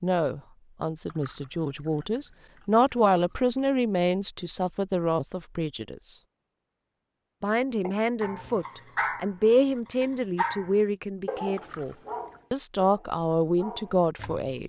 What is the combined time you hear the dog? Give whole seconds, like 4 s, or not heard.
7 s.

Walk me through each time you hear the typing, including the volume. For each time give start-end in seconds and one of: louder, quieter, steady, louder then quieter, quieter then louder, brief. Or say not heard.
not heard.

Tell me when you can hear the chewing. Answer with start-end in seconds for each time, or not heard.
not heard.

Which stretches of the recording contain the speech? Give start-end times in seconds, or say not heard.
0.0-6.2, 7.4-14.6.